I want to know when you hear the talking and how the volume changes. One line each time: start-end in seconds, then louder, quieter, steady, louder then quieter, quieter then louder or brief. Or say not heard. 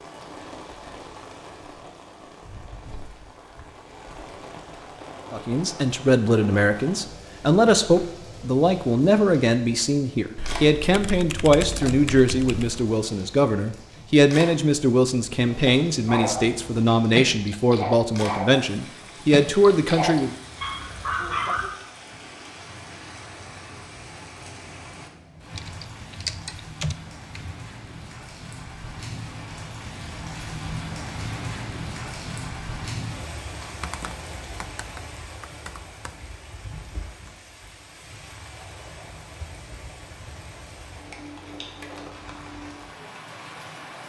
5.3-20.4 steady.